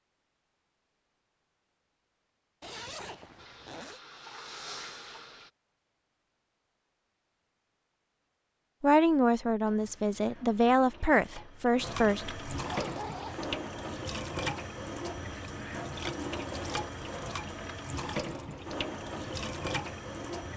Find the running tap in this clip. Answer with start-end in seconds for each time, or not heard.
3.4-5.5, 9.7-20.5.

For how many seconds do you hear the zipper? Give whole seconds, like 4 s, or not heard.
2 s.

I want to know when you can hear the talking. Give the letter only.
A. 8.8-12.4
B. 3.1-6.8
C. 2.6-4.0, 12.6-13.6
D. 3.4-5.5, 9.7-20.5
A.